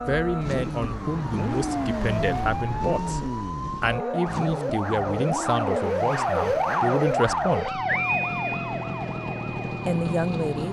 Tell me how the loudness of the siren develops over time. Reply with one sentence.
The loudness of the siren goes up, then down.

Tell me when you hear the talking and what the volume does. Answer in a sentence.
You can hear the talking from 0.1 to 7.8 s, at a steady volume; and briefly from 9.8 to 10.6 s.